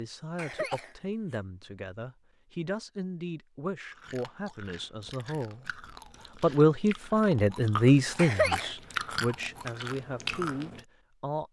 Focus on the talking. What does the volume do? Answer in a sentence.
The volume of the talking goes up, then down.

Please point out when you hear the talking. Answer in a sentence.
You can hear the talking from 0.0 to 5.8 s and from 6.4 to 11.4 s.